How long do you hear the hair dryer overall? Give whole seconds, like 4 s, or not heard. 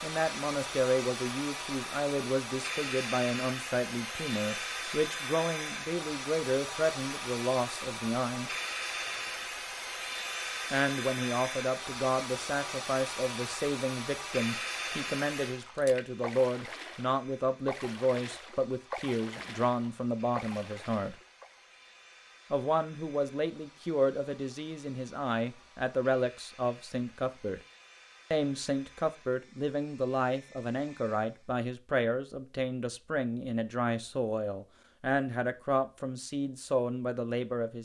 32 s.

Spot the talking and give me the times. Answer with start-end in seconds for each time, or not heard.
0.0-8.5, 10.7-21.1, 22.5-27.6, 28.3-37.8.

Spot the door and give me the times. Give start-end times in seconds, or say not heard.
not heard.